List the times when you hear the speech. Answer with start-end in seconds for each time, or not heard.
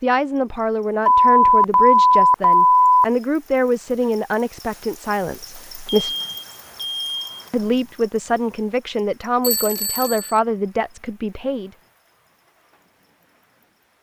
0.0-6.2, 7.5-11.7.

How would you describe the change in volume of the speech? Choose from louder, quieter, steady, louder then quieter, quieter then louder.
steady.